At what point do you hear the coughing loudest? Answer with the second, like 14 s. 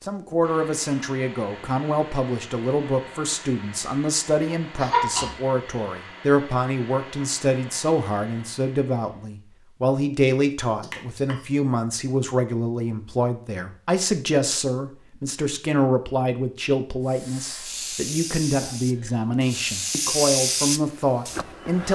5 s.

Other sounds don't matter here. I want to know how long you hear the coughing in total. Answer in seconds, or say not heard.
2 s.